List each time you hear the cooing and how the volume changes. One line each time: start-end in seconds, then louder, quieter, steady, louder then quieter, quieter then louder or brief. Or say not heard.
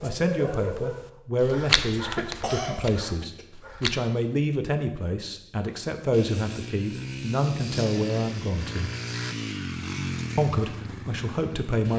not heard.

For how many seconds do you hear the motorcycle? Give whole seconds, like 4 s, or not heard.
6 s.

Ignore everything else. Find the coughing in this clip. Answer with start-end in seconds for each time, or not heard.
1.4-3.5.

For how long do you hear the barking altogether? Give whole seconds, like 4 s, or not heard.
4 s.